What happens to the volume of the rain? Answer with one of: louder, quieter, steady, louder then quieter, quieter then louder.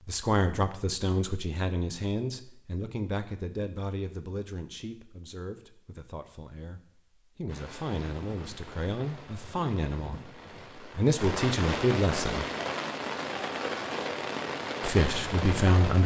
louder.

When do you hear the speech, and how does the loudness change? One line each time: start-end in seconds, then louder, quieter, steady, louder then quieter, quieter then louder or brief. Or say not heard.
0.1-12.4 quieter then louder
14.8-16.0 brief.